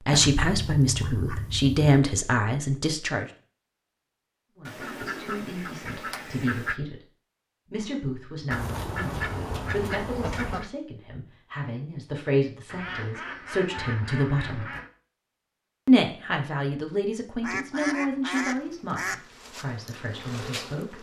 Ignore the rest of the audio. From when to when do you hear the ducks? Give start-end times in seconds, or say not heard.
0.1-1.8, 4.7-6.8, 8.5-10.7, 12.7-14.9, 17.4-19.2.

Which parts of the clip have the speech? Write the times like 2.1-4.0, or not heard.
0.1-3.2, 4.5-7.0, 7.7-14.7, 15.8-20.9.